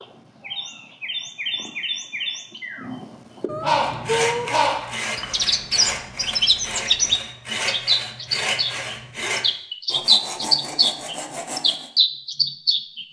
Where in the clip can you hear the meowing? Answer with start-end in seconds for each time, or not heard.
3.5-4.5.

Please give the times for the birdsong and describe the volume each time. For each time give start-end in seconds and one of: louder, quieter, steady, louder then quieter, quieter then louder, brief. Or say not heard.
0.0-13.0 louder.